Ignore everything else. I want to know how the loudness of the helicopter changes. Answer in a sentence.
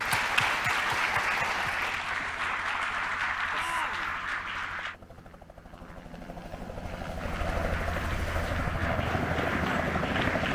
The volume of the helicopter goes up.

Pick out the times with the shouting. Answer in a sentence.
You can hear the shouting from 3.5 to 4.2 s.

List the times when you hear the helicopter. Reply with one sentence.
You can hear the helicopter from 0.0 to 10.4 s.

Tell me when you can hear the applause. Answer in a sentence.
The applause can be heard from 0.0 to 5.0 s and from 7.2 to 10.4 s.